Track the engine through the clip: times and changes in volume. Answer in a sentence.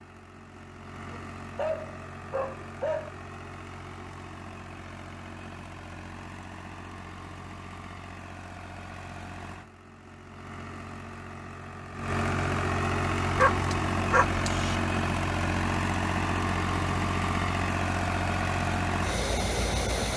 You can hear the engine from 0.0 to 20.1 s, getting louder.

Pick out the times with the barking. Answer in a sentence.
The barking can be heard from 1.1 to 3.1 s and from 13.3 to 14.8 s.